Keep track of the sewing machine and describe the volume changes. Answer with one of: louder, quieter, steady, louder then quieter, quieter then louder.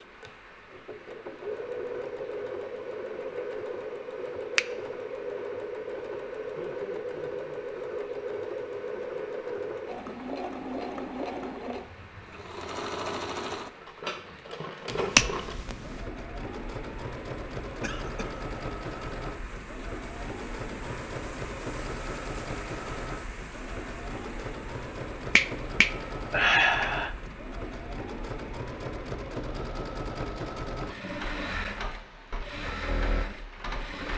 steady.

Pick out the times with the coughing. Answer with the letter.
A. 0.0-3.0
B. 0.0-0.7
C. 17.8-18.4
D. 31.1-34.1
C.